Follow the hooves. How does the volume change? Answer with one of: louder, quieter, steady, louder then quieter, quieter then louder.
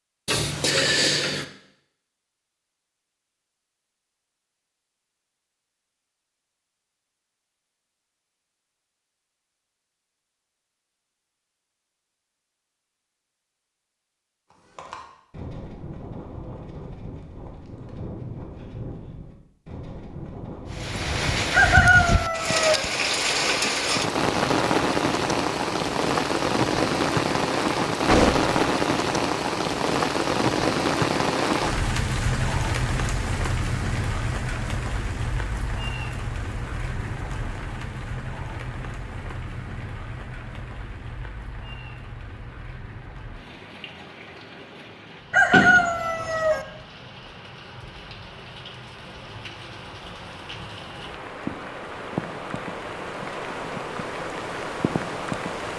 steady.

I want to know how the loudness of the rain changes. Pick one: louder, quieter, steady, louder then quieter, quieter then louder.
quieter then louder.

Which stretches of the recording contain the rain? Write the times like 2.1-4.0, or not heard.
20.7-55.7.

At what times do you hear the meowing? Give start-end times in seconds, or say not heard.
not heard.